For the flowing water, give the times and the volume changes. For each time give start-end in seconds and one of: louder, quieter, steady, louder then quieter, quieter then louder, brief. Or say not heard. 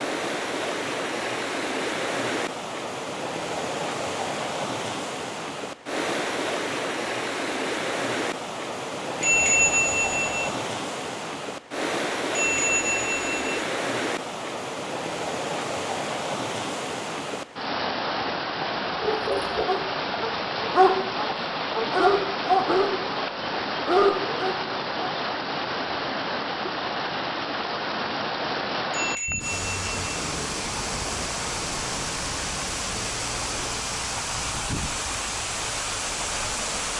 0.0-36.9 steady.